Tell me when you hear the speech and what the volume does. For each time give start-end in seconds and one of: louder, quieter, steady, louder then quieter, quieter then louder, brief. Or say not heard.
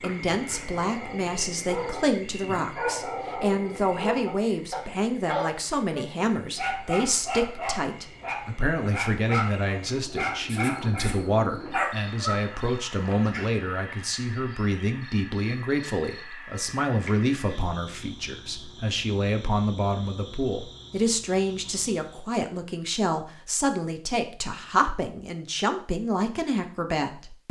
0.0-27.4 steady.